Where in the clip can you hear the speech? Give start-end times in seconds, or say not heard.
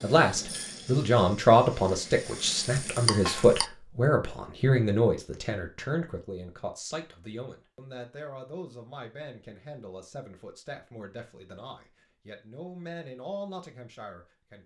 0.0-14.6.